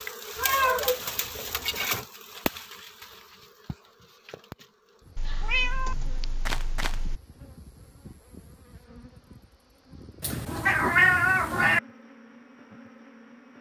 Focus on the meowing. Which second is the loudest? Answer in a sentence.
The volume of the meowing peaks at 11 seconds.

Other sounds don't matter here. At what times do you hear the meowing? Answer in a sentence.
You can hear the meowing from 0.3 to 2.0 s, from 5.2 to 7.2 s and from 10.2 to 11.8 s.